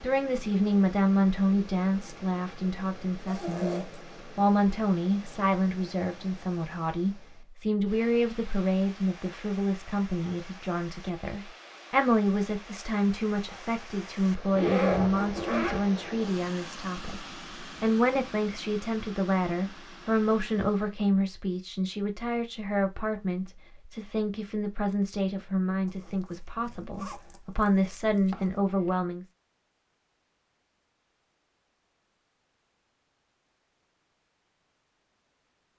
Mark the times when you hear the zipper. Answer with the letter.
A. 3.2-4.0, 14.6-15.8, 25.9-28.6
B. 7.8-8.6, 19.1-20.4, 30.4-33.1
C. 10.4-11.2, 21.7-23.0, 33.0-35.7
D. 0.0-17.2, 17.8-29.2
A.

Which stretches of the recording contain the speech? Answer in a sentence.
The speech can be heard from 0.0 to 17.2 s and from 17.8 to 29.2 s.